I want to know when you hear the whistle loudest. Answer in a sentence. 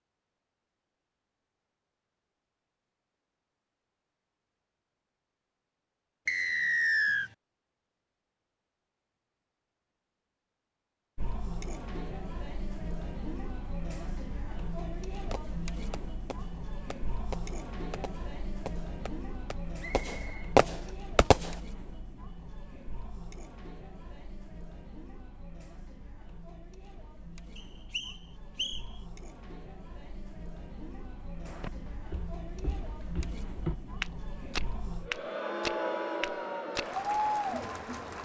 The loudest moment of the whistle is at 7 seconds.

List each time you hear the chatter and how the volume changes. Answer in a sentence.
You can hear the chatter from 11.2 to 38.2 s, getting quieter then louder.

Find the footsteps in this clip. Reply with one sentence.
The footsteps can be heard from 31.4 to 36.9 s.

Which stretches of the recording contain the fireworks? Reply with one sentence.
You can hear the fireworks from 15.3 to 21.6 s.